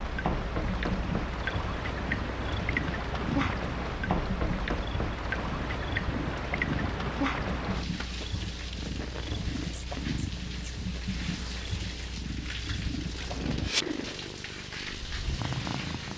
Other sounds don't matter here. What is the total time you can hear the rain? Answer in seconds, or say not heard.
16 s.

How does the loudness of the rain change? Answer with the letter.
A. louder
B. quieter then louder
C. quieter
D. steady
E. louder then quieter
C.